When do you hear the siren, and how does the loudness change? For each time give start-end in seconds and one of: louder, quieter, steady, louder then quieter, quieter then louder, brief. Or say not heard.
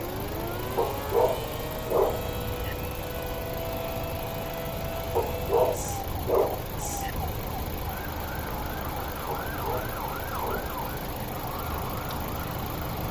0.0-13.0 steady.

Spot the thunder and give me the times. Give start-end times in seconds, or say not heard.
not heard.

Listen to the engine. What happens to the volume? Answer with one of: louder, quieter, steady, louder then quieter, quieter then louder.
steady.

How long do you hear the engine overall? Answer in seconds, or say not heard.
13 s.